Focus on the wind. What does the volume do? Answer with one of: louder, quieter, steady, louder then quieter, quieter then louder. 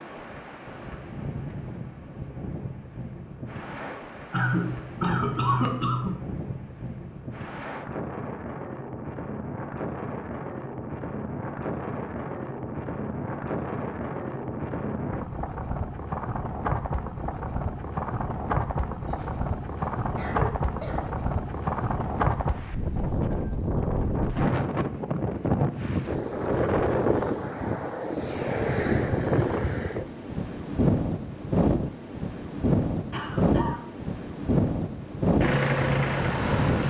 louder.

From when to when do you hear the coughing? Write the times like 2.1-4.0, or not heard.
4.3-6.2, 19.1-21.1, 33.1-33.9.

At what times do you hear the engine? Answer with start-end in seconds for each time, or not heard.
35.4-36.8.